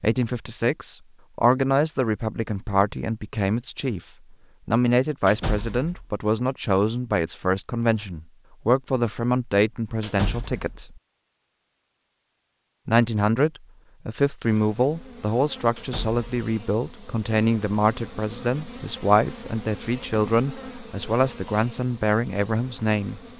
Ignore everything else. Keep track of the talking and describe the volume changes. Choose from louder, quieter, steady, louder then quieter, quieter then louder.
steady.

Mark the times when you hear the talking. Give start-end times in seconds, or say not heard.
0.0-11.0, 12.8-23.2.